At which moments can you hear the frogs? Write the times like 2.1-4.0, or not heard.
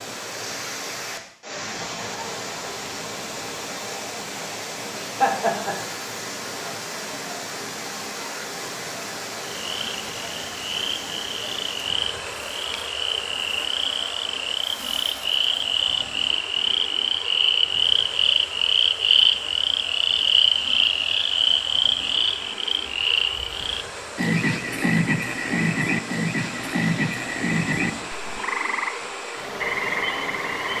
9.6-30.7.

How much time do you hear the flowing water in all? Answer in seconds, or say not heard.
31 s.